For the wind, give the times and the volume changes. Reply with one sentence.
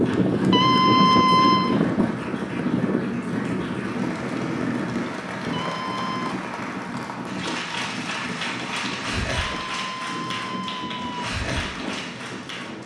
You can hear the wind from 0.0 to 12.8 s, getting quieter.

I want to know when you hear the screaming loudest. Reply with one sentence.
The loudest moment of the screaming is at 1 second.